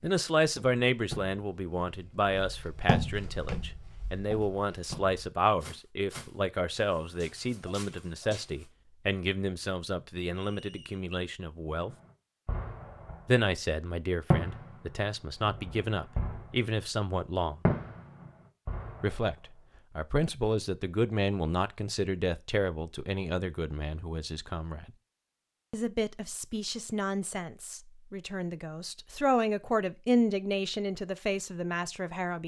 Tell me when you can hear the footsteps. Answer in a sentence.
You can hear the footsteps from 0.4 to 8.7 s.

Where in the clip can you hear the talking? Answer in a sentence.
The talking can be heard from 0.0 to 11.9 s, from 13.2 to 17.6 s, from 19.0 to 24.9 s and from 25.7 to 32.4 s.